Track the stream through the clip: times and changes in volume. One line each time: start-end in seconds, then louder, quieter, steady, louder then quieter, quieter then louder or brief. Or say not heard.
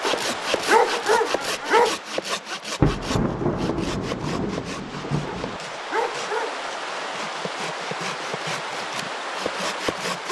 0.0-10.2 quieter then louder.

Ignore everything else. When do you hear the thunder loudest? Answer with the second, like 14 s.
3 s.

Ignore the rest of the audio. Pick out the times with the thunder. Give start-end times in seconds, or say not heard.
2.8-5.6.